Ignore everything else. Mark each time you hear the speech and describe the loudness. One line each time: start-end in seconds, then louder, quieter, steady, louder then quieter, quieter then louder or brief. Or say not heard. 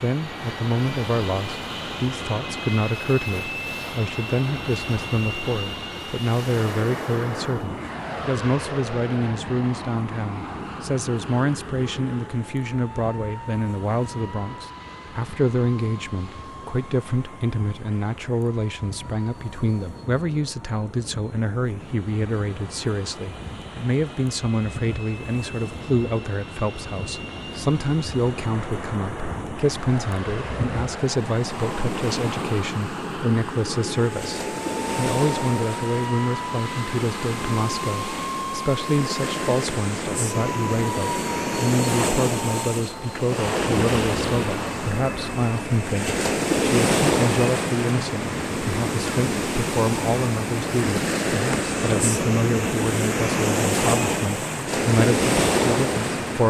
0.0-56.4 steady.